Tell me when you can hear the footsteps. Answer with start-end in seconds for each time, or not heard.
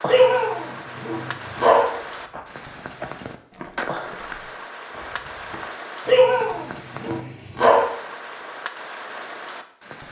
1.9-5.7.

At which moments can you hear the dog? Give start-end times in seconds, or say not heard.
0.1-1.9, 6.0-7.8.